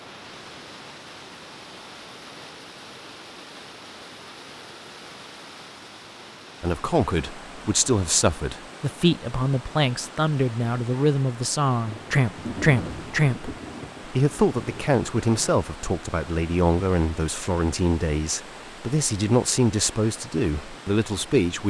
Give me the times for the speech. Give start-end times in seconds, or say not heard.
6.6-21.6.